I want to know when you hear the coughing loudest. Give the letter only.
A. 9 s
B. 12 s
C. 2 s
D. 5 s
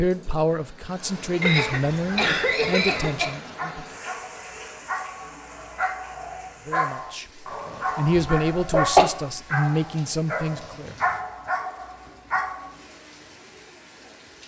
A.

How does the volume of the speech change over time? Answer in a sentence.
The volume of the speech goes down, then up.